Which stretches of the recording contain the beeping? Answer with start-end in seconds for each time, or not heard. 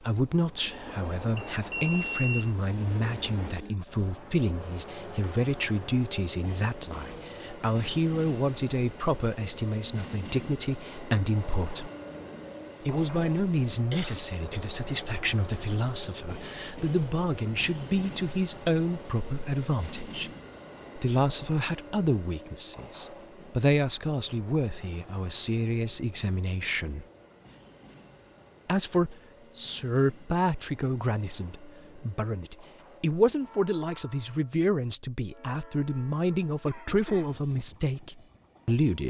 1.5-2.5.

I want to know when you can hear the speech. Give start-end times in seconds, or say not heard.
0.0-11.9, 12.8-20.3, 20.9-27.1, 28.6-39.0.